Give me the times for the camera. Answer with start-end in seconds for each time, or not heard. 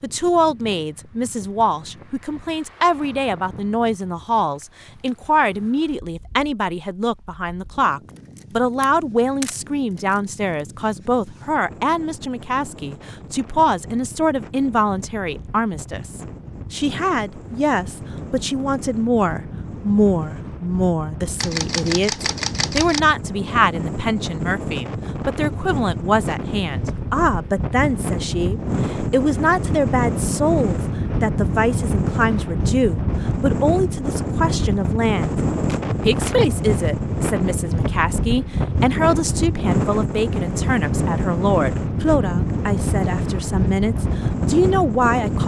8.3-10.2, 21.4-23.0, 35.6-36.4.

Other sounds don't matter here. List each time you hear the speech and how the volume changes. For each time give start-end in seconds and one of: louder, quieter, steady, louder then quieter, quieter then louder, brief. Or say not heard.
0.0-35.4 steady
36.0-45.4 steady.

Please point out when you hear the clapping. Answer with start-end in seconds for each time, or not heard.
not heard.